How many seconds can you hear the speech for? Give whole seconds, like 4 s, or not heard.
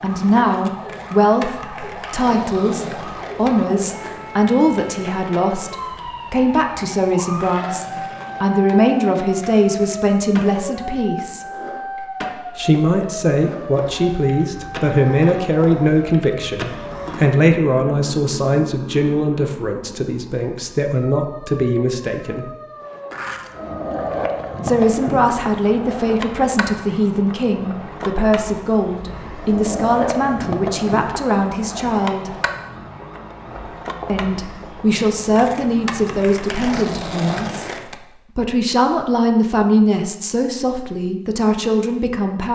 37 s.